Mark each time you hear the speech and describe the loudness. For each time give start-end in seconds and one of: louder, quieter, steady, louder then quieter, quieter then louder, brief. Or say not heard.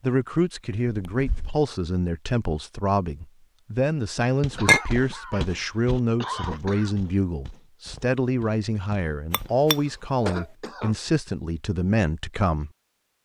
0.0-12.7 steady.